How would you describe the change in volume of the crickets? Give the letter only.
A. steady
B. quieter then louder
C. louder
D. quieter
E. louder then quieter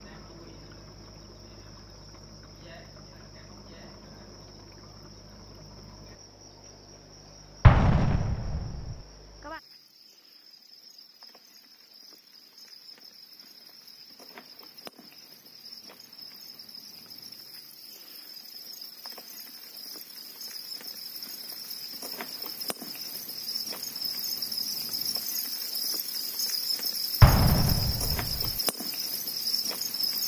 C.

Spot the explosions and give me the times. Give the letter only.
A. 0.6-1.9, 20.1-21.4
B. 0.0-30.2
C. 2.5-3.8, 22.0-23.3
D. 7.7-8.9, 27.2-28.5
D.